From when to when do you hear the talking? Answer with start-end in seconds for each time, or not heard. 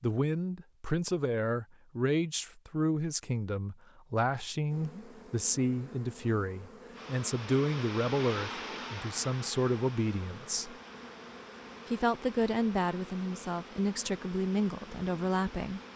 0.0-10.8, 11.8-15.8.